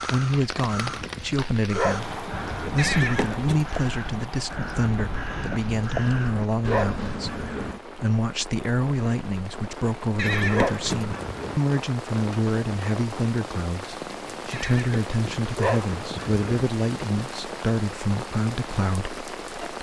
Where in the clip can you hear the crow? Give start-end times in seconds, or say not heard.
0.0-7.8.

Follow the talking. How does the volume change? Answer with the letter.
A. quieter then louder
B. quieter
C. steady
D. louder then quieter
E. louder
C.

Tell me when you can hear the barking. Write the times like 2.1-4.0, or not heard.
1.7-2.8, 6.7-7.8, 10.5-11.6, 15.6-16.4.